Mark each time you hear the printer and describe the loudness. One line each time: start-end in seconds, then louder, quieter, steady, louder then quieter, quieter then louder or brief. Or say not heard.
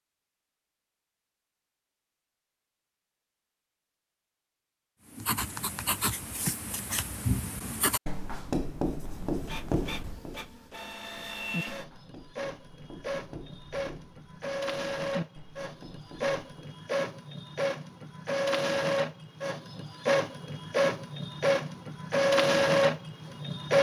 9.2-23.7 louder.